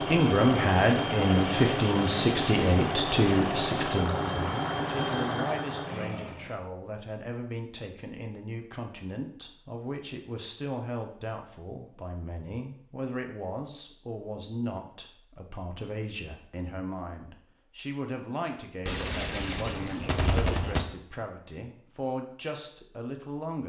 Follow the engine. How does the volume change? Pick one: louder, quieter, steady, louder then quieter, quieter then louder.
steady.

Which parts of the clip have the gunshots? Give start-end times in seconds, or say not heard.
18.9-20.9.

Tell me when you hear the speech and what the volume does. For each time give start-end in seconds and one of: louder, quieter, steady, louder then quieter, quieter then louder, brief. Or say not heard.
0.0-23.6 quieter.